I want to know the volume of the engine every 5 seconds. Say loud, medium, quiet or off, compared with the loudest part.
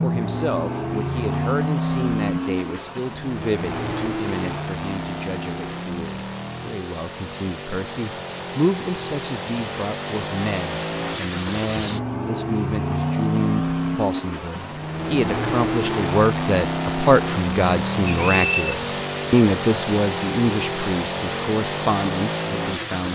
loud, medium, loud, loud, loud.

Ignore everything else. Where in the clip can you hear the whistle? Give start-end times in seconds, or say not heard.
18.1-18.8.